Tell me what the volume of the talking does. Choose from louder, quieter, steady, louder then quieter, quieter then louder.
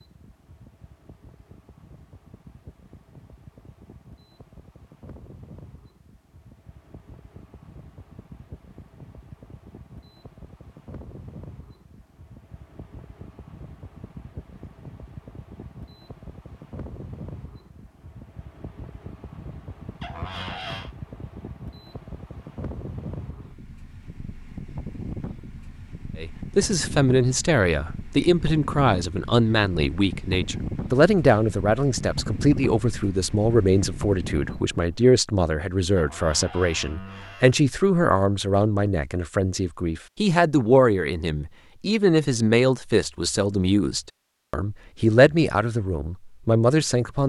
steady.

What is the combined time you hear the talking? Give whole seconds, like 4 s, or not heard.
21 s.